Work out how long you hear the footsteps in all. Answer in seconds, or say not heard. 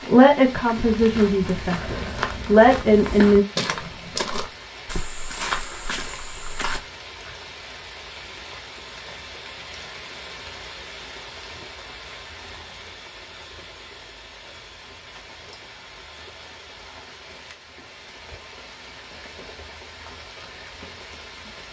6 s.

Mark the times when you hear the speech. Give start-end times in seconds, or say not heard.
0.1-3.5.